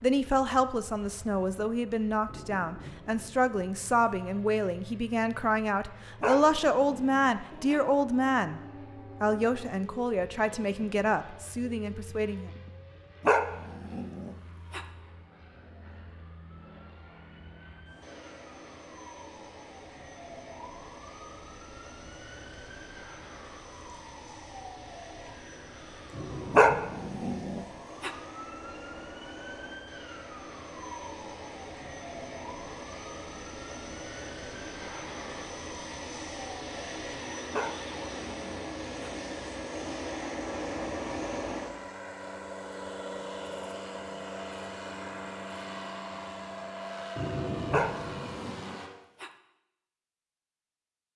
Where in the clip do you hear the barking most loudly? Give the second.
27 s.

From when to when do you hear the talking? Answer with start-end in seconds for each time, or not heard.
0.0-8.6, 9.2-12.5.